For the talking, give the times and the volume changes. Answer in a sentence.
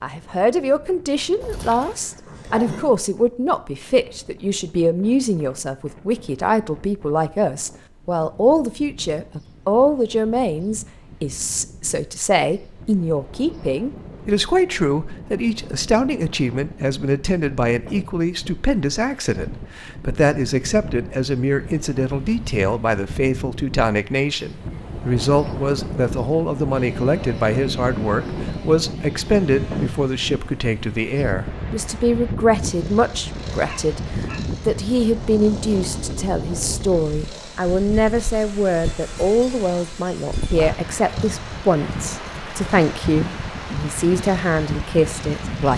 You can hear the talking from 0.0 to 45.7 s, at a steady volume.